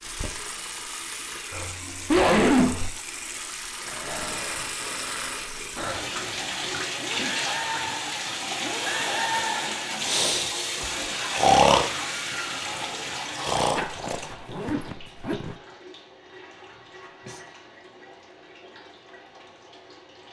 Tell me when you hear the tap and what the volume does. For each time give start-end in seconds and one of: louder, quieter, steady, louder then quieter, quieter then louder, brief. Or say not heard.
0.0-20.2 louder then quieter.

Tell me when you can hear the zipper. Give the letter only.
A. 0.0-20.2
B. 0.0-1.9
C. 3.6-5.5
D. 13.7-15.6
D.